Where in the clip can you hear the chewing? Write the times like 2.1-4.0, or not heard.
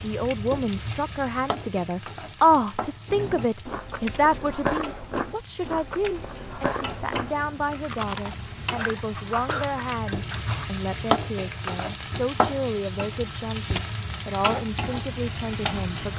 3.0-10.7.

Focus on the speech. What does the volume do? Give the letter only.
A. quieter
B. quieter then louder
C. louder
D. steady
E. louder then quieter
A.